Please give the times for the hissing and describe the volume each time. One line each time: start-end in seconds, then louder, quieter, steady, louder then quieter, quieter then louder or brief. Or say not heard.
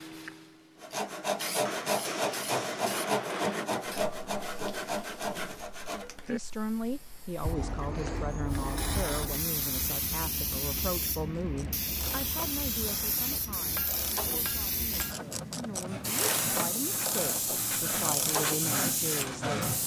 0.0-19.8 louder.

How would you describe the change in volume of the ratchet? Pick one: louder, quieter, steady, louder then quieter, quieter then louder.
louder.